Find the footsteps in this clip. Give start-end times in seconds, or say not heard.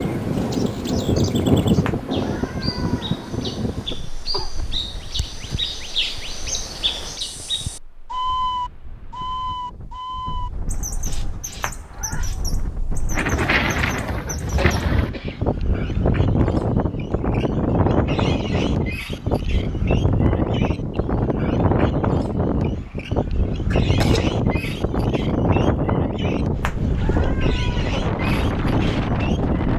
not heard.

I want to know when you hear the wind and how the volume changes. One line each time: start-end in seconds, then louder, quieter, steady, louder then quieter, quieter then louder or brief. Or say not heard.
0.0-29.7 quieter then louder.